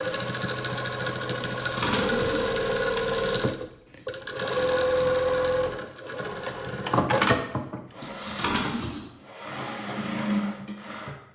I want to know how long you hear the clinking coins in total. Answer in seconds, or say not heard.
2 s.